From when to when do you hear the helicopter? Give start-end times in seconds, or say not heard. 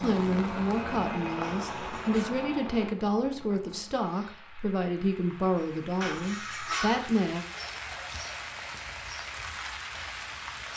0.0-2.9.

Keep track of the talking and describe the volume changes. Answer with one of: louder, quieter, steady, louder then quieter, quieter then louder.
steady.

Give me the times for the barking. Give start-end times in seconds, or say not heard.
1.4-2.5, 6.0-7.2.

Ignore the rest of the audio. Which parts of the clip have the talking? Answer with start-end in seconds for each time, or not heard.
0.0-7.5.